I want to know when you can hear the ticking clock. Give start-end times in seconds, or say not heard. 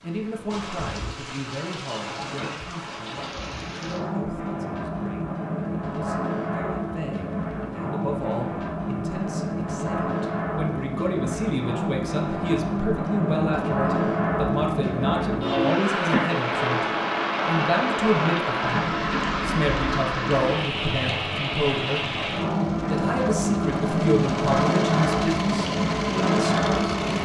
not heard.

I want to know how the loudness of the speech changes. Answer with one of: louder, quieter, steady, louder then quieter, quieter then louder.
louder.